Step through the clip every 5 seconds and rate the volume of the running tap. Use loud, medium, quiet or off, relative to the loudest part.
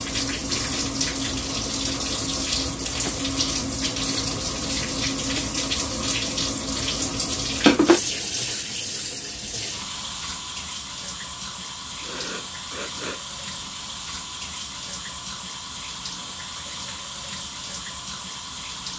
loud, loud, medium, medium.